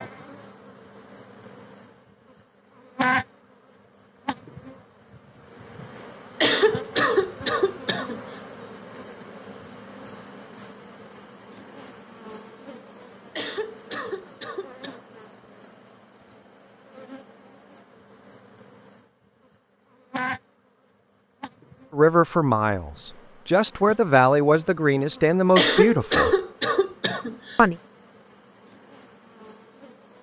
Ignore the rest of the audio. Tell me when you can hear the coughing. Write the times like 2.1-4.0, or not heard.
6.4-8.2, 13.3-15.0, 25.6-27.6.